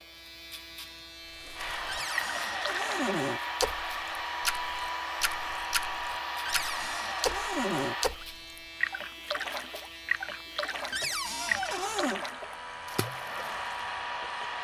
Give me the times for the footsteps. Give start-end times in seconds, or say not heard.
not heard.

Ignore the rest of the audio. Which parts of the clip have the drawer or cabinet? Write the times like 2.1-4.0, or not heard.
1.9-3.4, 6.5-8.0, 10.9-12.2.